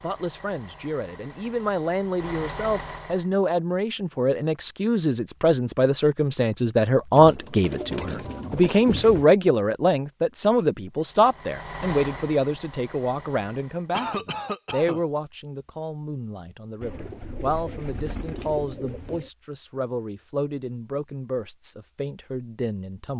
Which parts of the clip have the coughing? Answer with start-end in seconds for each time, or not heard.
13.9-15.1.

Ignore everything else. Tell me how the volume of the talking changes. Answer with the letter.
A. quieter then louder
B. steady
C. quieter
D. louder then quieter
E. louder
D.